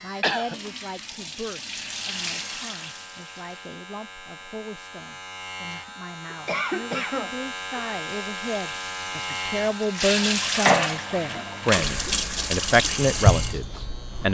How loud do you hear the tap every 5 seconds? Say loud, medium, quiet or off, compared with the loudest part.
medium, quiet, loud.